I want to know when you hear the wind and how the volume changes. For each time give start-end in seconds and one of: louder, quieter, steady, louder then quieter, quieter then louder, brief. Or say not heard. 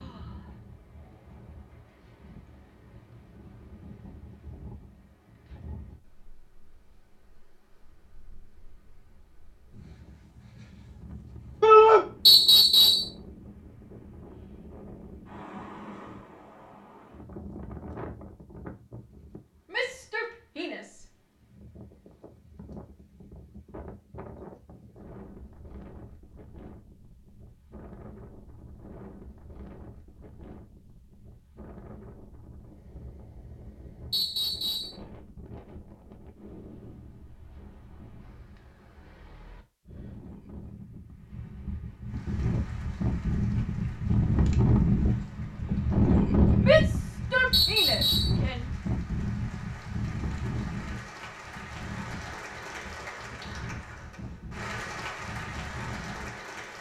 0.0-56.7 louder.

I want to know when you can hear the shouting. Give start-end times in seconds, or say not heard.
11.6-12.1, 19.7-21.1, 46.5-48.6.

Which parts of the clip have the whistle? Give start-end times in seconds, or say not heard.
12.2-13.1, 34.1-35.0, 47.5-48.4.